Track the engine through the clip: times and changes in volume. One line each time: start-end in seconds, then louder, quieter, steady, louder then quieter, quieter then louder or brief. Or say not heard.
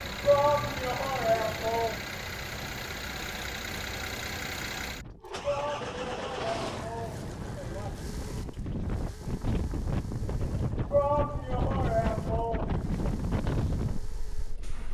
0.0-14.8 quieter.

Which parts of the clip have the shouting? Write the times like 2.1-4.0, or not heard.
0.2-2.0, 5.4-8.0, 10.9-13.1.